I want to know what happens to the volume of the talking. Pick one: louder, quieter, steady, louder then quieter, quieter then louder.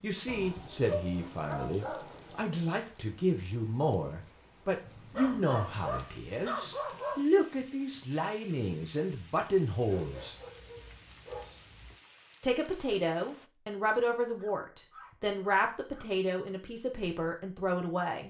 steady.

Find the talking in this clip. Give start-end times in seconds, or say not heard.
0.0-10.3, 12.4-18.2.